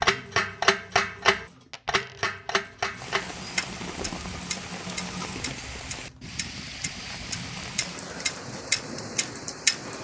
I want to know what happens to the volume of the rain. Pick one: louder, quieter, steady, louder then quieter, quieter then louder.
steady.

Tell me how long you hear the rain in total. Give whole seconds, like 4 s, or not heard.
7 s.